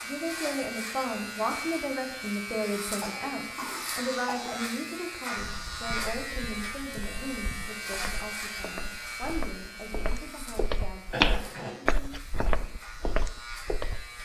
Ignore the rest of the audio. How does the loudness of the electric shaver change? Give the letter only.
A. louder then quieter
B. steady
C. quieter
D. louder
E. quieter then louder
C.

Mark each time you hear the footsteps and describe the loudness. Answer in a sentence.
You can hear the footsteps from 5.3 to 14.2 s, getting louder then quieter.